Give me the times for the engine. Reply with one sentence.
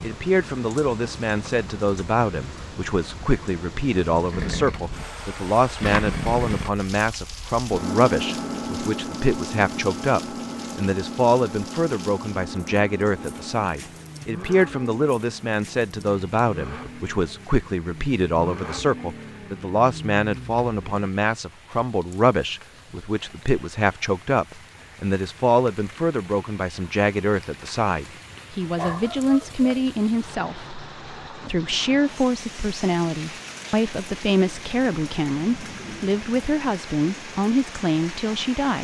The engine can be heard from 4.3 to 21.1 s.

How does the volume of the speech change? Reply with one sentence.
The loudness of the speech stays about the same.